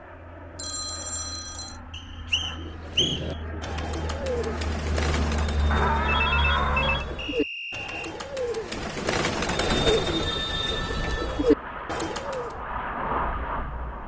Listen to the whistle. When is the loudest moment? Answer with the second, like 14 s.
3 s.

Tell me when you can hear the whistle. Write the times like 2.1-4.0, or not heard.
1.9-3.2, 7.2-8.2.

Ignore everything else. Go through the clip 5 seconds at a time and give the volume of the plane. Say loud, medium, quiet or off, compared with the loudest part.
medium, loud, loud.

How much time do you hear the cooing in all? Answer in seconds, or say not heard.
10 s.